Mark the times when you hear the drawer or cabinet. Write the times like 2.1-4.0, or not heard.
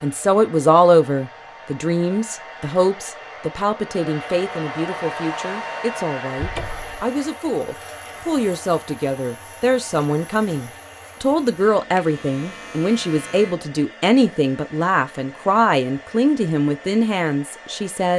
6.3-7.0.